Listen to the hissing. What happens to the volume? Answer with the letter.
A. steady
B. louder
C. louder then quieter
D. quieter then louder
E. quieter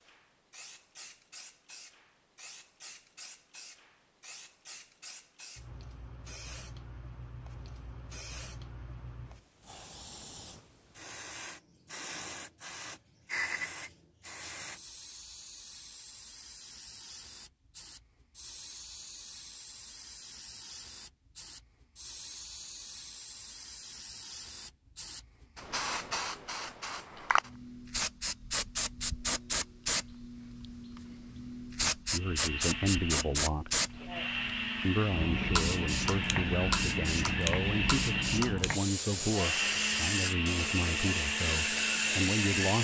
B.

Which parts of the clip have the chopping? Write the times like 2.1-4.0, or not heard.
not heard.